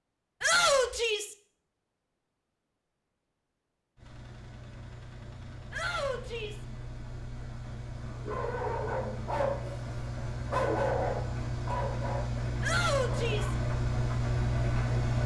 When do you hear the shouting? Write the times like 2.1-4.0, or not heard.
0.4-1.4, 5.7-6.7, 12.6-13.6.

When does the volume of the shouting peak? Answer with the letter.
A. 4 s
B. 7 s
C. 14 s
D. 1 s
D.